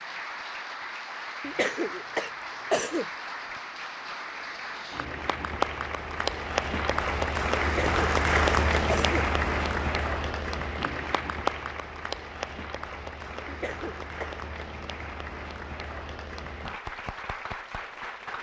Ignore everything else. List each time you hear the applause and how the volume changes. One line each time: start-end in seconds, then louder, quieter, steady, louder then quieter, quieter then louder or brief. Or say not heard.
0.0-18.3 louder then quieter.